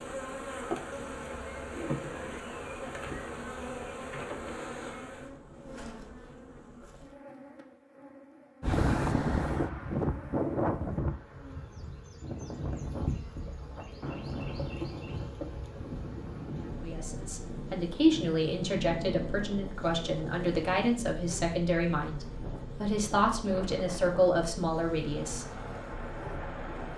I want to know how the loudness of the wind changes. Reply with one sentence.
The loudness of the wind goes down.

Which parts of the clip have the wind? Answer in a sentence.
The wind can be heard from 8.6 to 26.9 s.